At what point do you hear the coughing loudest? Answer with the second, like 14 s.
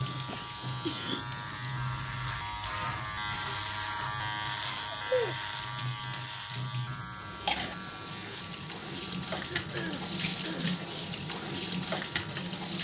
5 s.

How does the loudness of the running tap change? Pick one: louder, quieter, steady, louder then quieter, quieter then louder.
quieter then louder.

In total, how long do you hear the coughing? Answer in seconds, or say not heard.
3 s.